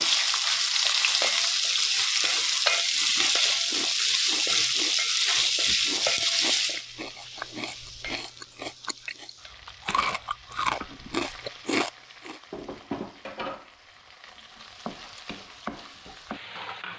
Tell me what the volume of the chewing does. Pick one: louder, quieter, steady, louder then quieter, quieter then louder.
louder.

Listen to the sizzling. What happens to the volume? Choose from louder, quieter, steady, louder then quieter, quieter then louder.
quieter.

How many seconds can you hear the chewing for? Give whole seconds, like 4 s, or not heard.
10 s.